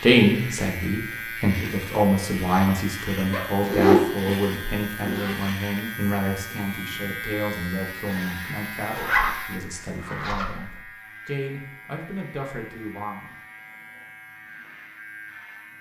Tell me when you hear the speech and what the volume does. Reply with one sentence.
You can hear the speech from 0.0 to 13.4 s, getting quieter.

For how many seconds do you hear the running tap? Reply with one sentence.
You can't hear the running tap here.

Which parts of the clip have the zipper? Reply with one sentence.
You can hear the zipper from 3.3 to 5.3 s and from 8.9 to 10.8 s.